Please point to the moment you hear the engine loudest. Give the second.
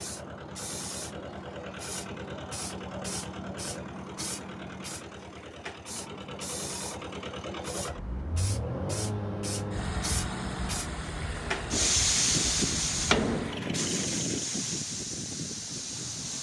9 s.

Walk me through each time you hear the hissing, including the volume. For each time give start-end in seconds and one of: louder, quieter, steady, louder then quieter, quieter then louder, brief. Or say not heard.
0.0-16.3 louder.